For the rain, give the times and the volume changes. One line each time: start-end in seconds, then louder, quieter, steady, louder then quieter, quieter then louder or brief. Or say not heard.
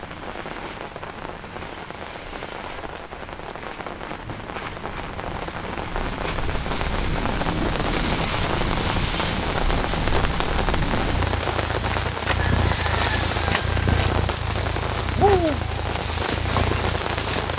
0.0-17.5 louder.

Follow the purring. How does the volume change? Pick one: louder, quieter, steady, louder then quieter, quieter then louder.
louder.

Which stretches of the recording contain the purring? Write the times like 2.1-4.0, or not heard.
0.0-17.5.